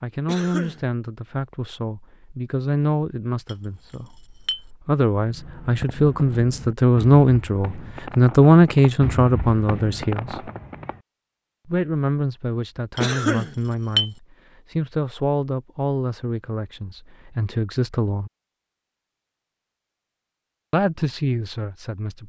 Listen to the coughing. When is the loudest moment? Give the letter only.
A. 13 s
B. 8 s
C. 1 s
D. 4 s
A.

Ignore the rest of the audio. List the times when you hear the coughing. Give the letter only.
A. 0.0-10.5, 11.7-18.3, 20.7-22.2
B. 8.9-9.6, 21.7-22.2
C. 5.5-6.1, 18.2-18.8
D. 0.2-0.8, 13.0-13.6
D.